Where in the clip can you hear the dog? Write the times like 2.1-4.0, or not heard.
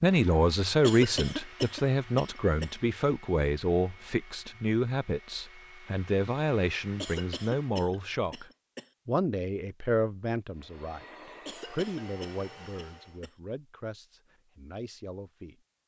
not heard.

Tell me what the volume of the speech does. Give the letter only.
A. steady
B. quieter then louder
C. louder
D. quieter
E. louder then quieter
D.